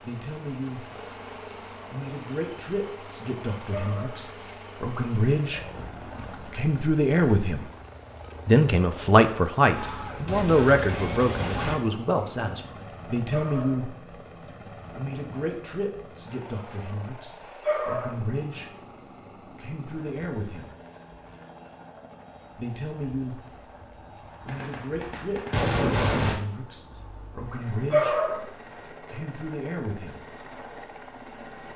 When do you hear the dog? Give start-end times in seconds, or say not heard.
3.7-4.2, 13.3-13.9, 17.6-18.2, 27.9-28.6.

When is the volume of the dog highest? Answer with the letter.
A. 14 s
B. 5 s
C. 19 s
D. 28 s
D.